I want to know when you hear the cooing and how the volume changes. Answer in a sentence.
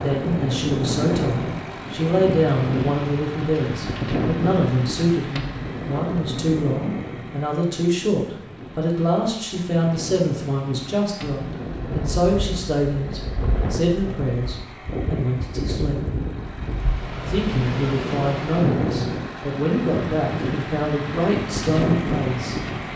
You can't hear the cooing here.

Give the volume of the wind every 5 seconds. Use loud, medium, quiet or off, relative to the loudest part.
loud, medium, medium, loud, loud.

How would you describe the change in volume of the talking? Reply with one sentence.
The loudness of the talking stays about the same.